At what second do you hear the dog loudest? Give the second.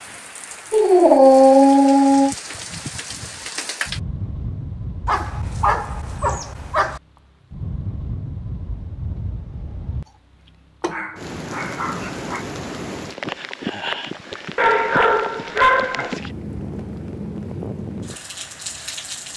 1 s.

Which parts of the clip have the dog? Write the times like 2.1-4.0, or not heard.
0.7-2.4, 5.0-7.0, 10.8-12.4, 14.6-16.2.